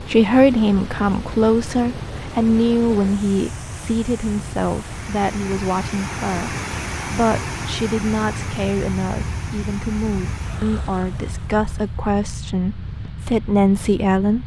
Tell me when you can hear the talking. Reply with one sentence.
You can hear the talking from 0.0 to 14.4 s.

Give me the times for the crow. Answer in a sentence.
You can't hear the crow here.